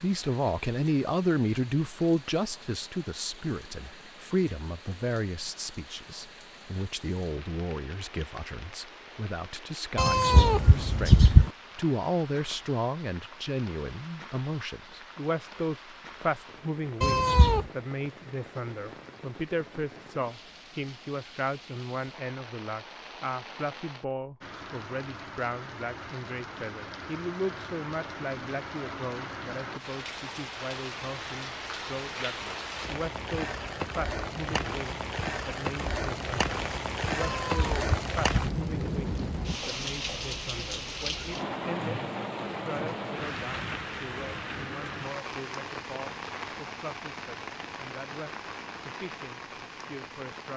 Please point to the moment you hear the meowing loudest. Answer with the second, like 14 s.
11 s.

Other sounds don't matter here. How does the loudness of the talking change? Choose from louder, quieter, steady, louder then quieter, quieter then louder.
quieter.